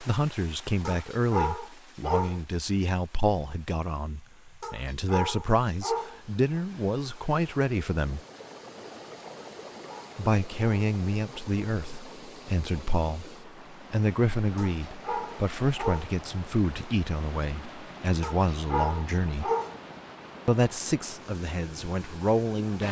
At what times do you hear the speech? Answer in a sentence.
You can hear the speech from 0.0 to 8.2 s, from 10.2 to 19.5 s and from 20.4 to 22.8 s.